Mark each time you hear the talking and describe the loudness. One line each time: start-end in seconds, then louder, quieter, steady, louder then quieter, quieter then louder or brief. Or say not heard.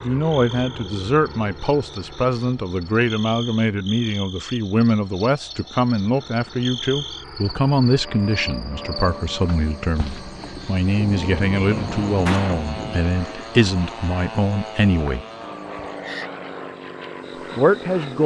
0.0-15.2 steady
17.6-18.2 brief.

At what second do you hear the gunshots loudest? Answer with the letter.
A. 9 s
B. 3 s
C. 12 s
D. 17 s
C.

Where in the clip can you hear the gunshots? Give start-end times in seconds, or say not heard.
10.9-12.9.